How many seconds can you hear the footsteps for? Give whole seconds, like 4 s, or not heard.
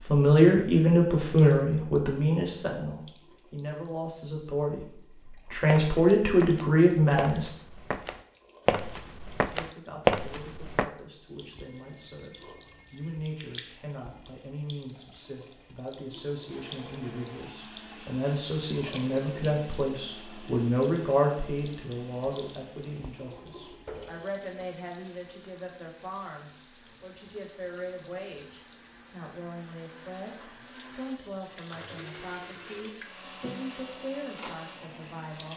5 s.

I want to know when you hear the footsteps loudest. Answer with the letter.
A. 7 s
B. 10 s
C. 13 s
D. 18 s
B.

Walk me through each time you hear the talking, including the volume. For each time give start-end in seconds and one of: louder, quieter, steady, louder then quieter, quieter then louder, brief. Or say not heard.
0.0-7.5 quieter then louder
9.5-35.5 louder then quieter.